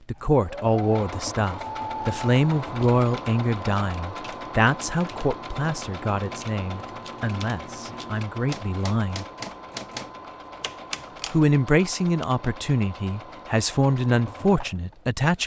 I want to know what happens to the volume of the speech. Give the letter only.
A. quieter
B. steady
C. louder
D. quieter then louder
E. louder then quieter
D.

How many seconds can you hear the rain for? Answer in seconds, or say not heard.
not heard.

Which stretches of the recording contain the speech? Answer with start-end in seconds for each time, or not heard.
0.1-9.2, 11.3-15.4.